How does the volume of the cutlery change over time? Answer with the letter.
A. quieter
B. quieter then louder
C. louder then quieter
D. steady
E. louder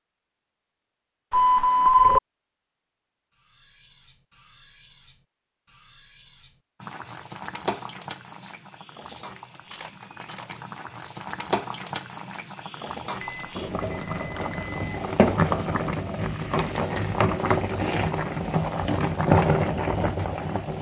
C.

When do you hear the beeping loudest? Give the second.
2 s.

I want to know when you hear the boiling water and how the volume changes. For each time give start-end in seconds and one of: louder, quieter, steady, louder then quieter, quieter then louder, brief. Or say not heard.
6.8-20.7 louder.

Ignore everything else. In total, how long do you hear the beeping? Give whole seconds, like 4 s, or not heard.
3 s.